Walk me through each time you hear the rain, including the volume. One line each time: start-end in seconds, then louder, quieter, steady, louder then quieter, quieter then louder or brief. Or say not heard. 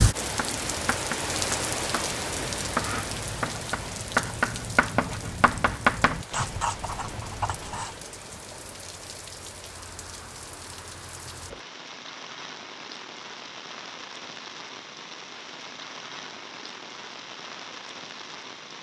0.0-18.7 quieter.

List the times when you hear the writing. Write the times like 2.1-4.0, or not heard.
0.2-7.9.